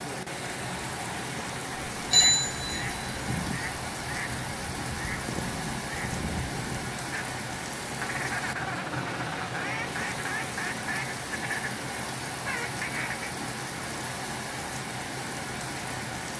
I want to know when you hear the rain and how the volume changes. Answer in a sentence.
You can hear the rain from 0.0 to 16.3 s, at a steady volume.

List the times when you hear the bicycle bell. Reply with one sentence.
The bicycle bell can be heard from 2.1 to 3.2 s.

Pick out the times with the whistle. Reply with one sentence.
You can't hear the whistle here.